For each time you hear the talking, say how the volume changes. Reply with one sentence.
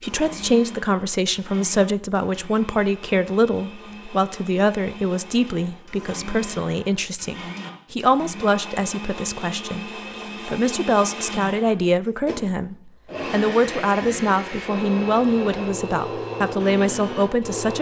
You can hear the talking from 0.0 to 17.7 s, at a steady volume.